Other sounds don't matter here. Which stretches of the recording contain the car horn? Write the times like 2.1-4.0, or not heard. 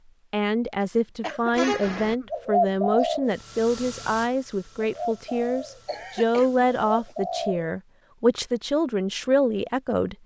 1.5-2.1.